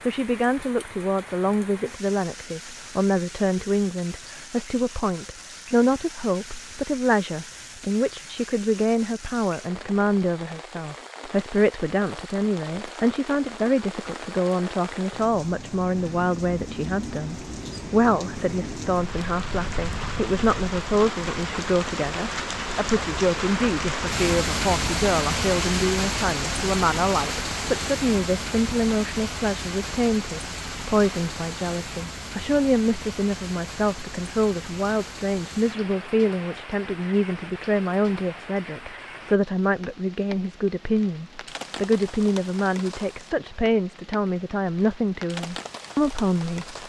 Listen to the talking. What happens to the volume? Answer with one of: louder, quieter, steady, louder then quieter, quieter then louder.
steady.